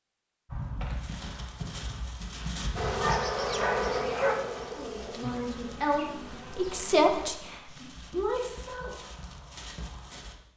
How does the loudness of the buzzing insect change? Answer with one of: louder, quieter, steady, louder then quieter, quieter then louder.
quieter.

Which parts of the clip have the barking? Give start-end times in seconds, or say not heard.
3.0-4.4.